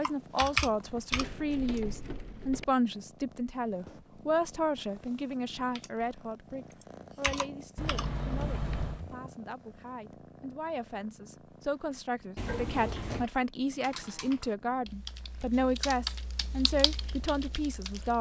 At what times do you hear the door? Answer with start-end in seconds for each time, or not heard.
1.1-2.6, 7.8-9.1, 12.3-13.3.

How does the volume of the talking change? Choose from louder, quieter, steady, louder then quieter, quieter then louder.
quieter then louder.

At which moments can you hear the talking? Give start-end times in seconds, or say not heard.
0.0-18.1.